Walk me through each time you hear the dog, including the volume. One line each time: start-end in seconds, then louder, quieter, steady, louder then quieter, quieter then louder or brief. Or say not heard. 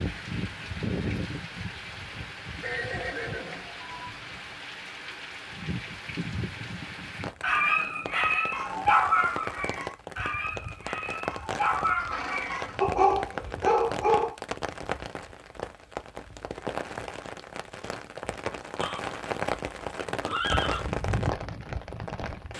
7.4-14.3 quieter then louder.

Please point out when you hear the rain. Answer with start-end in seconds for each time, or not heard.
0.0-22.5.